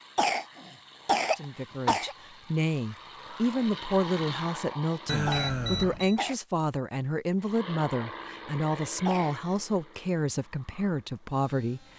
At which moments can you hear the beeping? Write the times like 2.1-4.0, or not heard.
5.0-6.2.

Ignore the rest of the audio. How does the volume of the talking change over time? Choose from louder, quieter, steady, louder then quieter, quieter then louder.
steady.